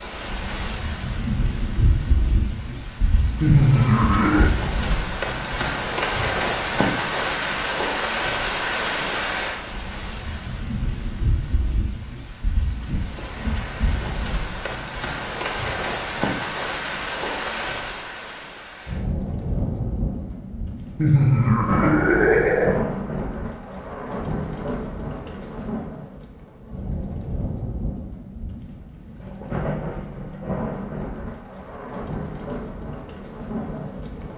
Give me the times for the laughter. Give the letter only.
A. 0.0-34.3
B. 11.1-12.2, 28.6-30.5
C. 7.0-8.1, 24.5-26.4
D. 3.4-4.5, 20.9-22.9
D.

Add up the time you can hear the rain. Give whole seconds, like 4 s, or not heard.
34 s.